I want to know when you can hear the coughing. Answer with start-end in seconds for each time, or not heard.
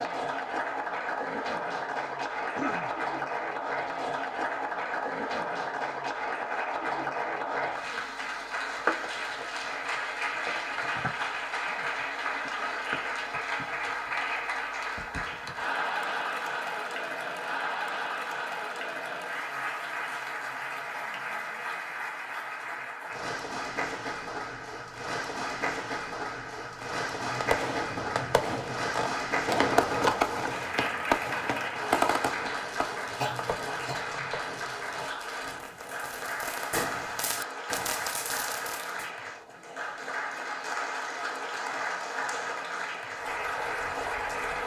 2.4-2.9, 33.2-34.2.